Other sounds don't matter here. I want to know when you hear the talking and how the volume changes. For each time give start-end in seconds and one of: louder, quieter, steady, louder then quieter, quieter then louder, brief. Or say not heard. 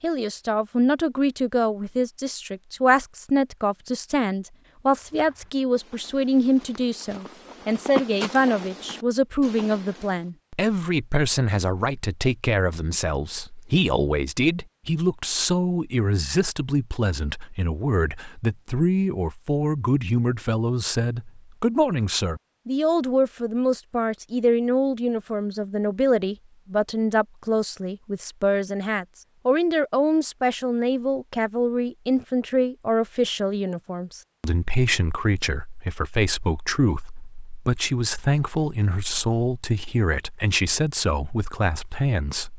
0.0-42.5 steady.